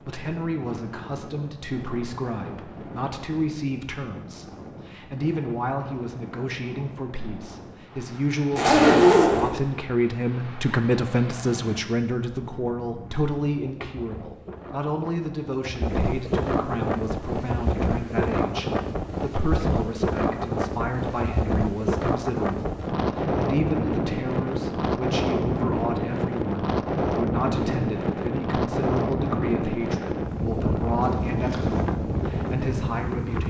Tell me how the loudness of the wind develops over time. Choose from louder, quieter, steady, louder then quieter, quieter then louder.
louder.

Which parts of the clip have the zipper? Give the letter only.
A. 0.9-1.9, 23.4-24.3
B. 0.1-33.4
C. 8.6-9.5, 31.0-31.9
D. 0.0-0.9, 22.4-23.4
C.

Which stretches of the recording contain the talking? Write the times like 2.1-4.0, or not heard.
0.1-33.4.